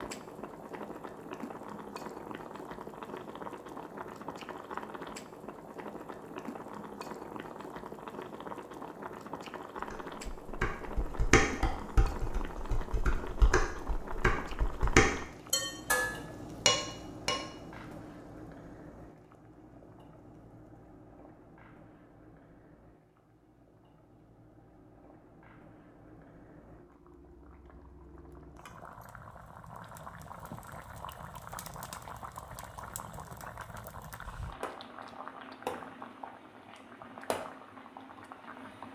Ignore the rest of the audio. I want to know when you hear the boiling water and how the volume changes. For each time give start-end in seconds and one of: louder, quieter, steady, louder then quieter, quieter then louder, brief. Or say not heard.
0.0-38.9 quieter then louder.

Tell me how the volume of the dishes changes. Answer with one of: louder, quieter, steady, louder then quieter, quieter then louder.
quieter then louder.